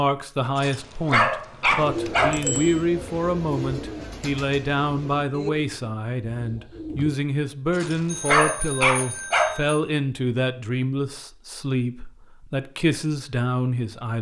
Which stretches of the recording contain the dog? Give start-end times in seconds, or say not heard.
0.6-2.4, 7.7-9.6.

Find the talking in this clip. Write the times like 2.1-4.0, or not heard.
0.0-14.1.